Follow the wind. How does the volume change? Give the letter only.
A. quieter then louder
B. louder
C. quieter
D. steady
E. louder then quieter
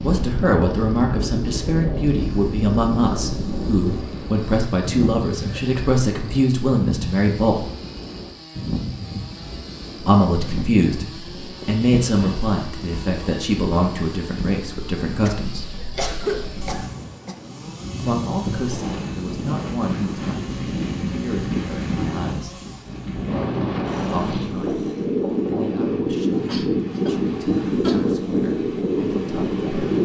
A.